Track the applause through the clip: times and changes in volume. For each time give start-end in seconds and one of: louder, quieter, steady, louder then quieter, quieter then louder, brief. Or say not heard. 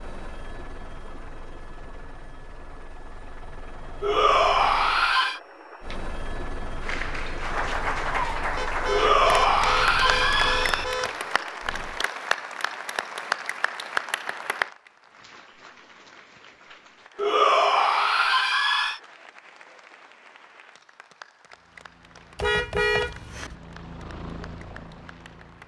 6.8-25.6 quieter.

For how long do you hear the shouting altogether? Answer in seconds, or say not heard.
5 s.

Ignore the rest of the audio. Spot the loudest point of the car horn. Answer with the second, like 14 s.
23 s.